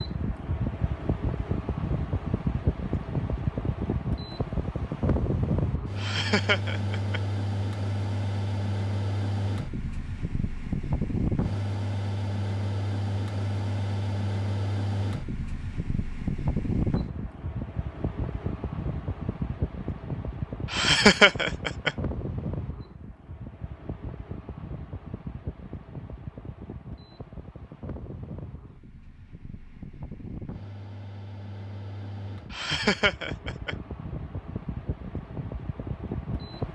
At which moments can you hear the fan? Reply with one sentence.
The fan can be heard from 0.0 to 36.7 s.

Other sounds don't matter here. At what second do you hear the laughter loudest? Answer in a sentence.
The volume of the laughter peaks at 21 seconds.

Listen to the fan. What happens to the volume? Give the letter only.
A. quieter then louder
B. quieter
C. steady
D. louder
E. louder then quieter
B.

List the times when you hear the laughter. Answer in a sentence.
The laughter can be heard from 6.0 to 7.2 s, from 20.7 to 21.9 s and from 32.5 to 33.8 s.